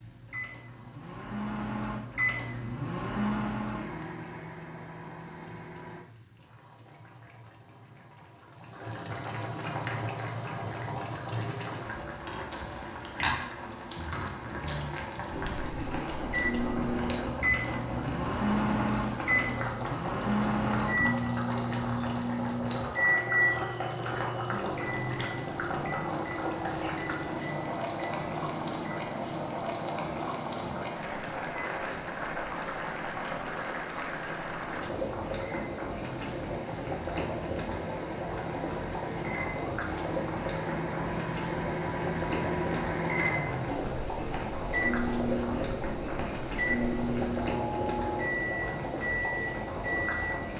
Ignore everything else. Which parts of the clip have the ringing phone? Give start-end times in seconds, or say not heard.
not heard.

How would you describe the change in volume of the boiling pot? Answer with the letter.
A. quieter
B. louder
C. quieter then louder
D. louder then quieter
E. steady
B.